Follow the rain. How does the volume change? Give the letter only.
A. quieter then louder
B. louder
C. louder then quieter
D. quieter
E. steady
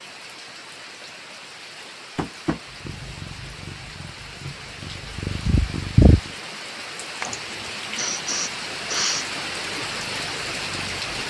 B.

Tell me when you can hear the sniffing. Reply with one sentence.
The sniffing can be heard from 7.2 to 9.2 s.